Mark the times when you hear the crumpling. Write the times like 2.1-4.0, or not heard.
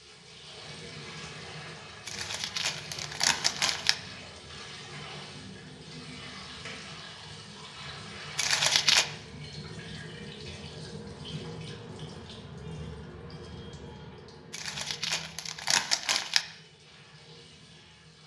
2.0-4.0, 8.3-9.1, 14.5-16.4.